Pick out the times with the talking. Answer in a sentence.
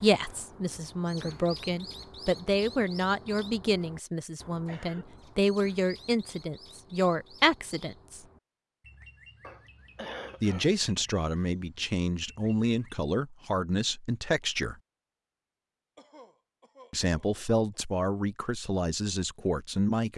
The talking can be heard from 0.0 to 8.2 s, from 10.4 to 14.8 s and from 16.9 to 20.1 s.